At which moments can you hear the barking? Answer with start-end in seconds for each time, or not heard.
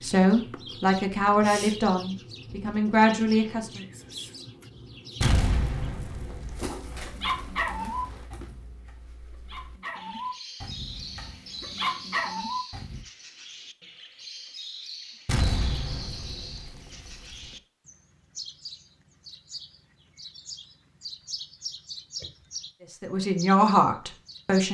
7.0-13.1.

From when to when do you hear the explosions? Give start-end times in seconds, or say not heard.
5.2-7.4, 15.2-17.5.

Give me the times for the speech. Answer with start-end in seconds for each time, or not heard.
0.0-3.8, 22.9-24.6.